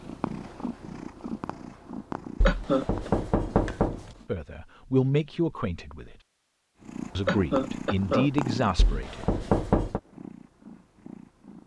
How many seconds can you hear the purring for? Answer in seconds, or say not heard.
9 s.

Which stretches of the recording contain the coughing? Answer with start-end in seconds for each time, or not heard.
2.5-3.1, 7.2-8.3.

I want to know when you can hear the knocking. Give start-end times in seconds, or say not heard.
2.4-4.2, 8.8-10.0.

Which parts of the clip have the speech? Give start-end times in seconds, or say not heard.
4.2-6.2, 7.2-9.2.